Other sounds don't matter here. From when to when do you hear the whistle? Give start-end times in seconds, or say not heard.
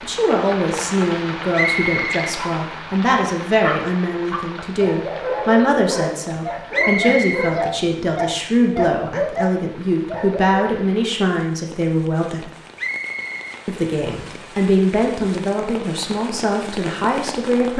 1.5-2.2, 6.7-7.5, 12.8-14.3.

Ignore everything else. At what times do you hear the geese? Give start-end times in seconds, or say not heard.
not heard.